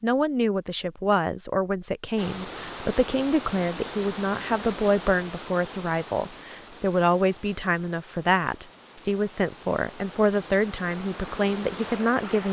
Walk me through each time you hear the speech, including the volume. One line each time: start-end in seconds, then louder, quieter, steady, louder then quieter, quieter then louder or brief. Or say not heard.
0.0-12.4 steady.